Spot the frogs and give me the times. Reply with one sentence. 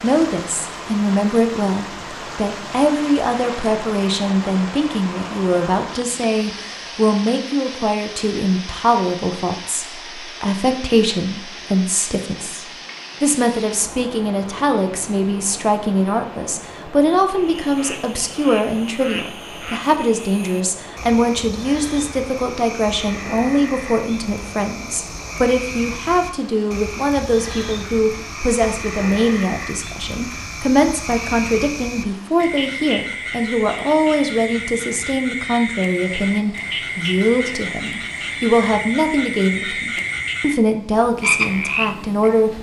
You can hear the frogs from 17.4 to 42.5 s.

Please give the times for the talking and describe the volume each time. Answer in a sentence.
You can hear the talking from 0.0 to 42.5 s, at a steady volume.